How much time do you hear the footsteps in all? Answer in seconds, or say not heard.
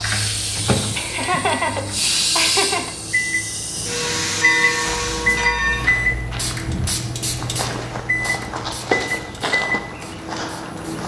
6 s.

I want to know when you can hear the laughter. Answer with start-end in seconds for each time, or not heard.
0.9-3.0.